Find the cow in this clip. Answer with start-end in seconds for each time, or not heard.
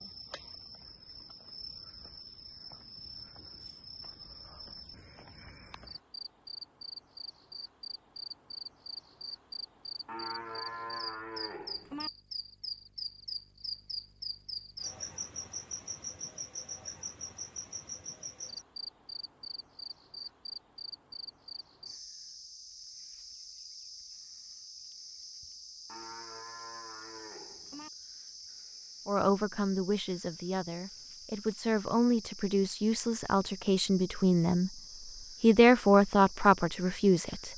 10.1-12.1, 25.9-27.9.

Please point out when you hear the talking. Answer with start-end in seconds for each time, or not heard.
29.1-34.7, 35.4-37.5.